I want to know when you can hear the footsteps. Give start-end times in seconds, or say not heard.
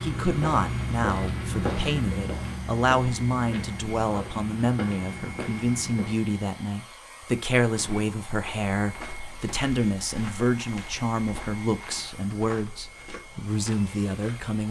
0.0-6.2, 7.8-14.5.